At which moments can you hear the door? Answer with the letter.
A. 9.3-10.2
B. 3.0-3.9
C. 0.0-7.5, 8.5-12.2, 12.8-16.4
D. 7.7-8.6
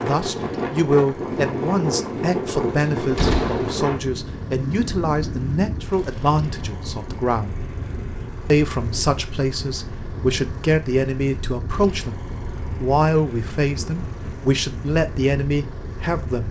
B.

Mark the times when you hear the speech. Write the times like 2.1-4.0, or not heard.
0.0-7.5, 8.5-12.2, 12.8-16.4.